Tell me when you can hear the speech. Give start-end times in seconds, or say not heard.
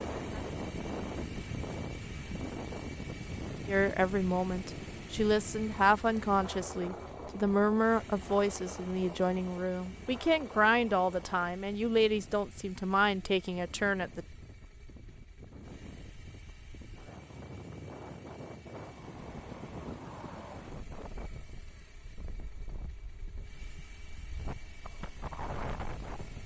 3.6-14.2.